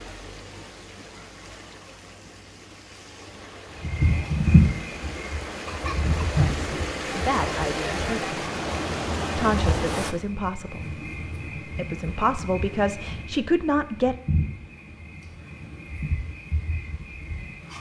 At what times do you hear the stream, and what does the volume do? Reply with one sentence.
You can hear the stream from 0.0 to 10.2 s, getting louder.